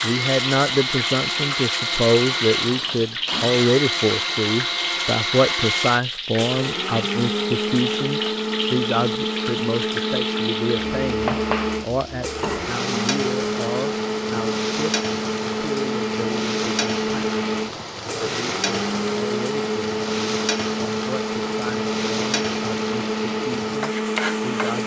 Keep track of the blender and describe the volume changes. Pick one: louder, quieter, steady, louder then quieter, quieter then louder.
steady.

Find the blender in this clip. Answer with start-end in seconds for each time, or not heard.
0.0-24.8.